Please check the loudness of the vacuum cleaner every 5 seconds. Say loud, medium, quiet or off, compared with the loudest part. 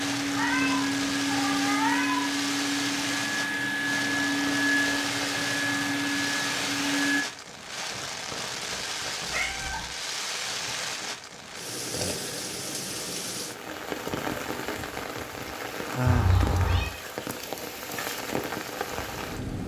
loud, loud, off, off.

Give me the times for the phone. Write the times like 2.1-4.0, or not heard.
not heard.